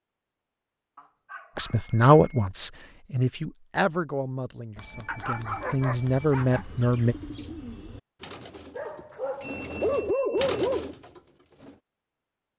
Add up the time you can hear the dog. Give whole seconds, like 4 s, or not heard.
5 s.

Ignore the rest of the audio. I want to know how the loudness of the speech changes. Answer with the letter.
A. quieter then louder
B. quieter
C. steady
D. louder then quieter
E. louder
A.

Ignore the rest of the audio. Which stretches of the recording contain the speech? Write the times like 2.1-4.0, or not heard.
1.6-7.2.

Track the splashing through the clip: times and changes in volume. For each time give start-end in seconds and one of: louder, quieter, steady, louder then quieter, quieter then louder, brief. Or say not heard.
not heard.